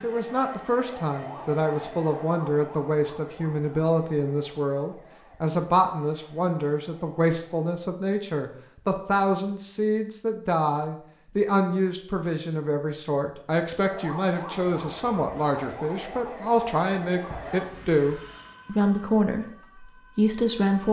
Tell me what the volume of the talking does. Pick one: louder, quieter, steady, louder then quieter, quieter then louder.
steady.